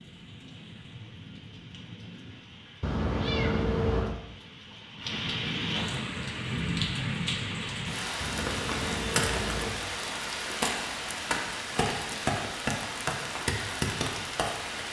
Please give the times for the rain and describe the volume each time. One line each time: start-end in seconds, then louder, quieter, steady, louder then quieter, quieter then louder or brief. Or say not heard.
0.0-14.8 louder.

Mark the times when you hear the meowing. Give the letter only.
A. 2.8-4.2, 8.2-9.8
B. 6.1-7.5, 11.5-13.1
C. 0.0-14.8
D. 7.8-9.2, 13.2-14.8
A.